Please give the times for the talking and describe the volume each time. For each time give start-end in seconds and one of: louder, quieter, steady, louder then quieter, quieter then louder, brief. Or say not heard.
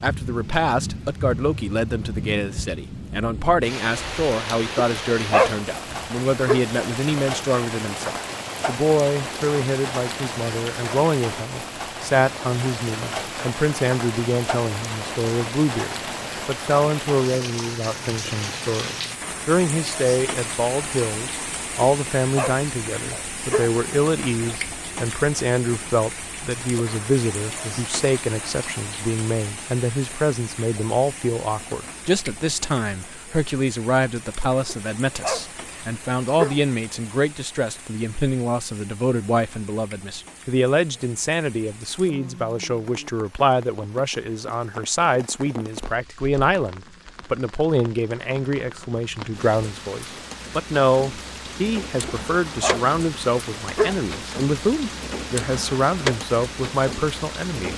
0.0-57.7 steady.